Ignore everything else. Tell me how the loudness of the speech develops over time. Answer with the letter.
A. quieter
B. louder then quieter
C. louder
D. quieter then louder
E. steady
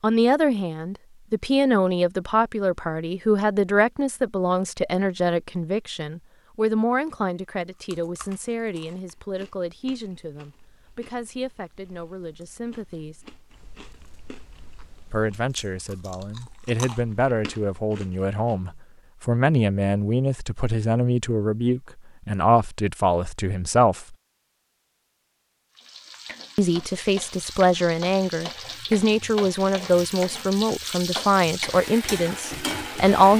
D.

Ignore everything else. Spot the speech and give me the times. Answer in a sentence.
You can hear the speech from 0.0 to 13.2 s, from 15.1 to 24.1 s and from 26.6 to 33.3 s.